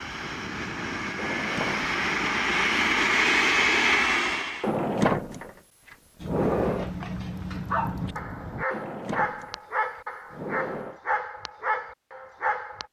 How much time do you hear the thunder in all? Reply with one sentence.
You can hear the thunder for 2 seconds altogether.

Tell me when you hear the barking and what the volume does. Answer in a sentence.
The barking can be heard from 6.2 to 12.8 s, at a steady volume.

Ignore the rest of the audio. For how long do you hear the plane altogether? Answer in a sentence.
You can hear the plane for 5 seconds altogether.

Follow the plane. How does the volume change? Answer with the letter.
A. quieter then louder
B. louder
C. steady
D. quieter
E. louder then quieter
B.